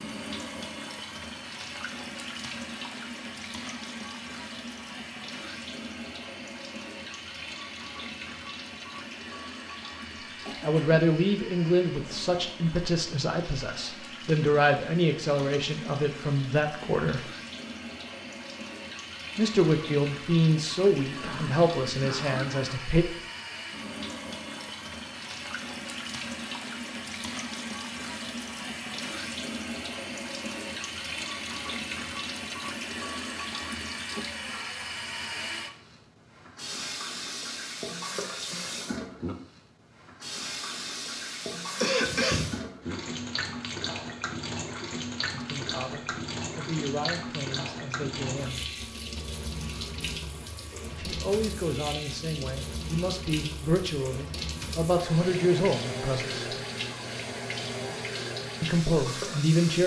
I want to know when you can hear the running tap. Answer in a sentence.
The running tap can be heard from 0.0 to 59.8 s.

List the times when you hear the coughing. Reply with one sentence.
The coughing can be heard from 10.4 to 11.0 s, from 21.2 to 22.8 s and from 41.8 to 42.6 s.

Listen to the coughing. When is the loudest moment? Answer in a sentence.
The volume of the coughing peaks at 42 seconds.